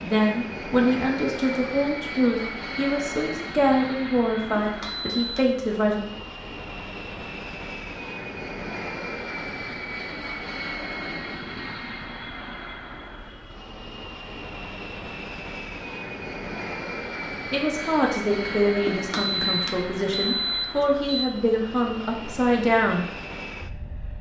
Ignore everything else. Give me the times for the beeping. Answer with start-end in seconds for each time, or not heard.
4.5-5.5, 18.9-21.3.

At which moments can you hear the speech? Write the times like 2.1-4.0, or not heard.
0.0-6.0, 17.5-23.1.